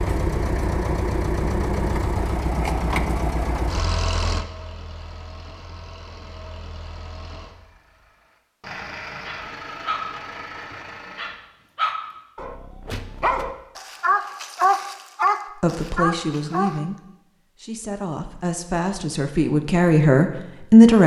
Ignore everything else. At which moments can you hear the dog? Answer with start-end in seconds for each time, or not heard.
9.2-16.8.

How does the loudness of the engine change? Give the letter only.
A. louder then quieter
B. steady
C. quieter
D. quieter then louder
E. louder
D.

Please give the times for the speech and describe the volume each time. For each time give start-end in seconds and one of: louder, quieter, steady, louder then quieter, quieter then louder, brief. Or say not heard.
15.6-21.0 quieter then louder.